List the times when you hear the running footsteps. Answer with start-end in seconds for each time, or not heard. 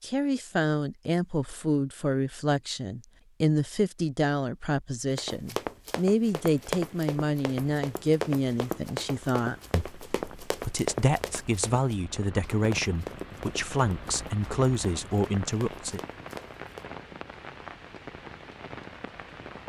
5.1-16.9.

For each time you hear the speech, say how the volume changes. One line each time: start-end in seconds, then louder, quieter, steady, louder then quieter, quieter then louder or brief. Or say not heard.
0.0-16.0 steady.